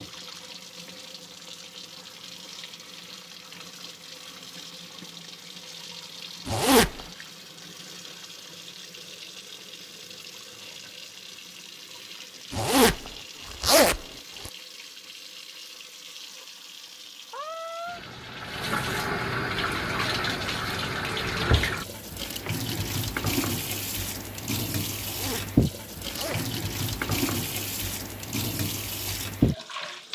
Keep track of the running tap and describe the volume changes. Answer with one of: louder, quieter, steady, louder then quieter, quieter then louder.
louder.